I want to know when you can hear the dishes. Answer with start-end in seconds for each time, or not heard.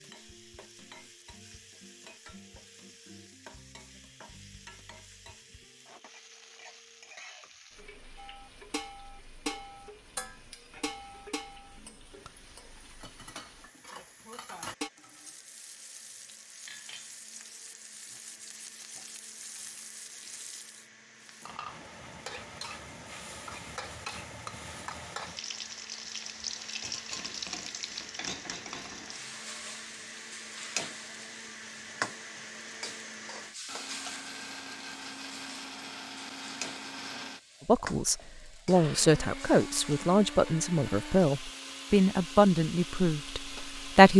8.2-14.9.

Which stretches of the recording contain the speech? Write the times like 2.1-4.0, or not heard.
37.6-44.1.